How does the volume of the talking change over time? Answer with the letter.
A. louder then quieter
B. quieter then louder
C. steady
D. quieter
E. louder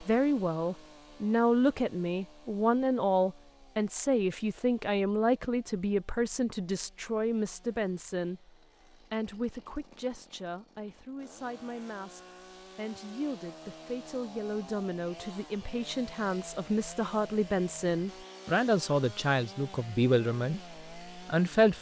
B.